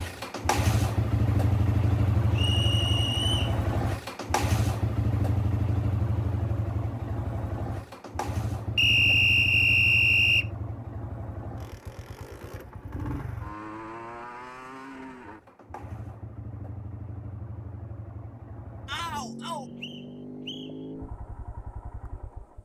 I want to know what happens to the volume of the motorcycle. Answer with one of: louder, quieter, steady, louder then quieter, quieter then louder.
quieter.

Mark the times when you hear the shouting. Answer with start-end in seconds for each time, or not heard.
18.9-19.6.